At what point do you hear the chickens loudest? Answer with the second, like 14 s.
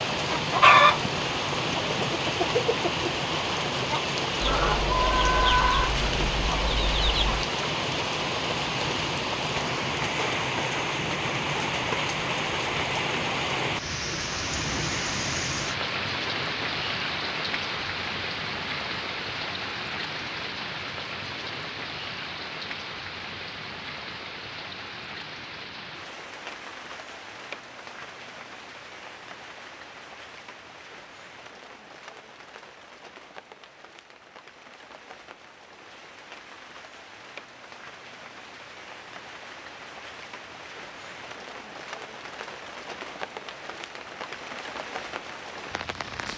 1 s.